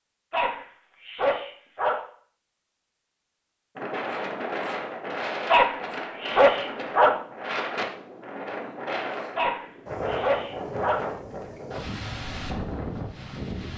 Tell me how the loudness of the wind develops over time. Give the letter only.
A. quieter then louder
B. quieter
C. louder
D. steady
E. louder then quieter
D.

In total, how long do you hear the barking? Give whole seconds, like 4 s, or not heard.
5 s.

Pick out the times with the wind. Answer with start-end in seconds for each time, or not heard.
3.8-13.7.